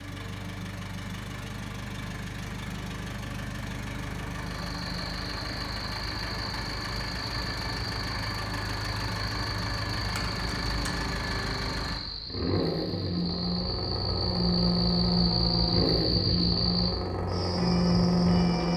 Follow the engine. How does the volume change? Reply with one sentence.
The volume of the engine goes up.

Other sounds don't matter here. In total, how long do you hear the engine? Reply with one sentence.
The engine can be heard for 19 seconds in total.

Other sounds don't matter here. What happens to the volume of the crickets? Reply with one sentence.
The loudness of the crickets goes up.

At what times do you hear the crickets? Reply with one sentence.
You can hear the crickets from 4.5 to 18.7 s.